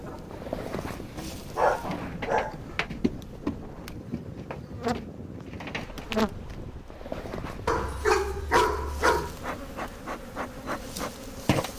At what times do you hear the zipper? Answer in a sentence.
The zipper can be heard from 0.3 to 2.2 s and from 6.9 to 7.8 s.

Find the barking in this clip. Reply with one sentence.
The barking can be heard from 1.0 to 2.5 s and from 7.7 to 9.3 s.